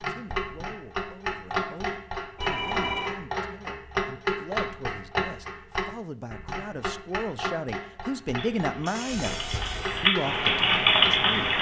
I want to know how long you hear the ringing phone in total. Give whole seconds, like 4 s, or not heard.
2 s.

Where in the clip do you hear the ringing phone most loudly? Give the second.
3 s.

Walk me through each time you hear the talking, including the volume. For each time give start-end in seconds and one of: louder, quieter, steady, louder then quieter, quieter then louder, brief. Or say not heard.
0.1-11.5 louder.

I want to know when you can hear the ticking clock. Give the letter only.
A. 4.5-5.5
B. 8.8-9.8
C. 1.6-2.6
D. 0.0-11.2
D.